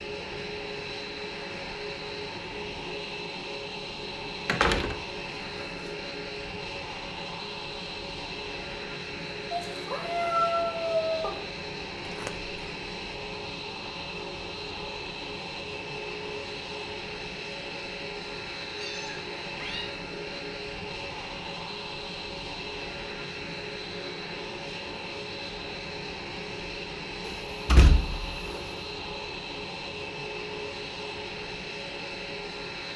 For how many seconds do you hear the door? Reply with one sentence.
You can hear the door for 2 seconds altogether.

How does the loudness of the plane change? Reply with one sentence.
The loudness of the plane stays about the same.